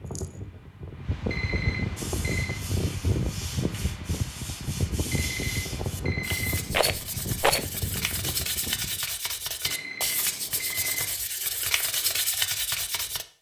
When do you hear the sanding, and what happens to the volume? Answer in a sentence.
You can hear the sanding from 1.9 to 13.2 s, getting louder.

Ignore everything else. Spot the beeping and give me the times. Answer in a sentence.
You can hear the beeping from 1.2 to 2.6 s, from 5.1 to 6.8 s and from 9.6 to 11.1 s.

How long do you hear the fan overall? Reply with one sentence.
You can hear the fan for 9 seconds altogether.